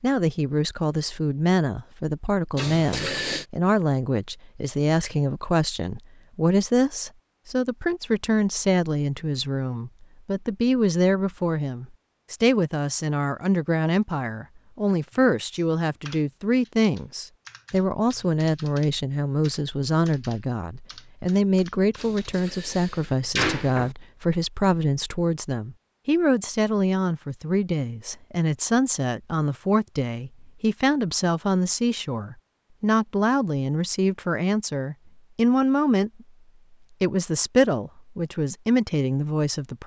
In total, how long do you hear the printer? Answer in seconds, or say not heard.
not heard.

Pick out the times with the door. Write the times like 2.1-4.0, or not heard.
2.5-3.5, 21.9-23.9.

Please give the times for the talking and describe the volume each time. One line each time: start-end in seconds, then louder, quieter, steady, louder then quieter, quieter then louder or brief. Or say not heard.
0.0-36.1 steady
37.0-39.8 brief.